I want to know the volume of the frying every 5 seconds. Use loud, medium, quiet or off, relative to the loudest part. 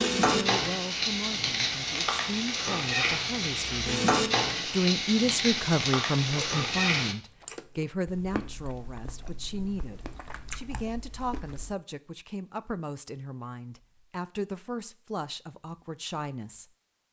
loud, loud, off, off.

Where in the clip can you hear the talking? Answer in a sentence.
The talking can be heard from 0.0 to 16.6 s.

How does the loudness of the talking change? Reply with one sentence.
The volume of the talking goes up, then down.